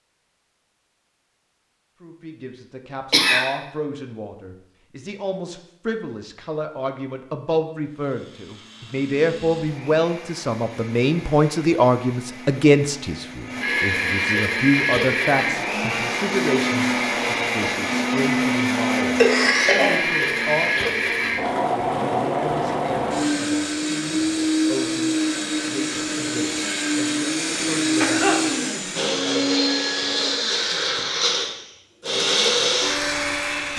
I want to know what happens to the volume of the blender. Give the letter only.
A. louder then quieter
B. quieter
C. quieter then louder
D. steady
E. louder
E.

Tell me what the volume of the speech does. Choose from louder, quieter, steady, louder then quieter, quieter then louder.
louder then quieter.